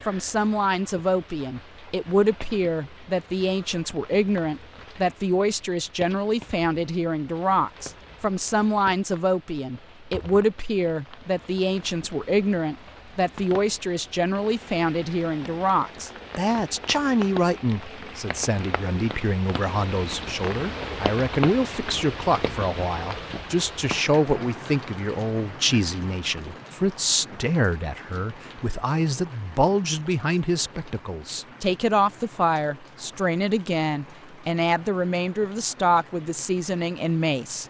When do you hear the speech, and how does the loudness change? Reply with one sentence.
The speech can be heard from 0.1 to 37.6 s, at a steady volume.